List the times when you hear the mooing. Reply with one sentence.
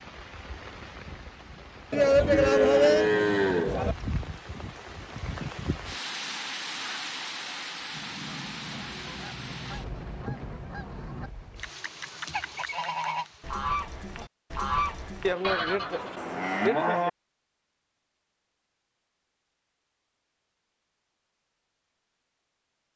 The mooing can be heard from 1.9 to 4.0 s and from 15.2 to 17.1 s.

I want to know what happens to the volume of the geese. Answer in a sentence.
The volume of the geese goes up.